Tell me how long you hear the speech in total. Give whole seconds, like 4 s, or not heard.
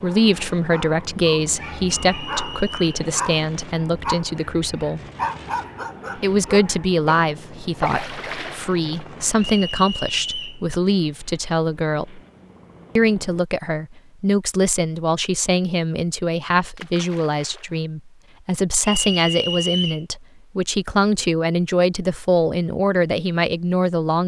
22 s.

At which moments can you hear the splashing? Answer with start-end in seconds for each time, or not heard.
7.8-8.8, 16.8-17.8.